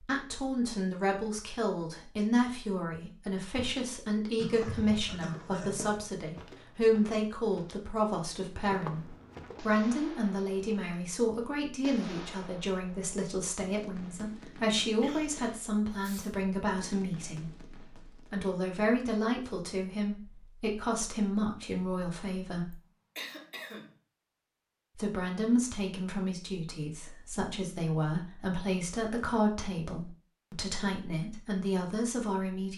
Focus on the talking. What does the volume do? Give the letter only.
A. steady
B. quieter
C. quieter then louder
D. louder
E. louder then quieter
A.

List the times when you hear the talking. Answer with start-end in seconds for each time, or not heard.
0.0-22.8, 24.9-32.7.